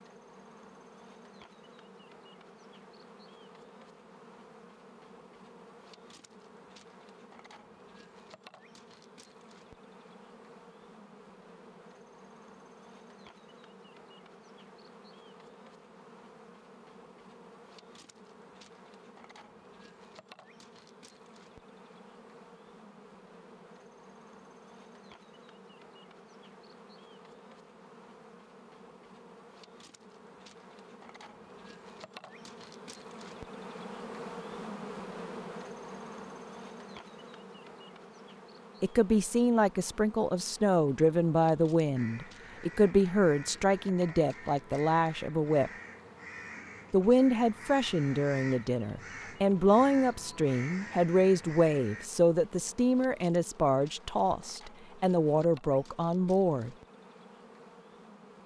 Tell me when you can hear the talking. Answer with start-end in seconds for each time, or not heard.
38.8-45.7, 46.9-56.7.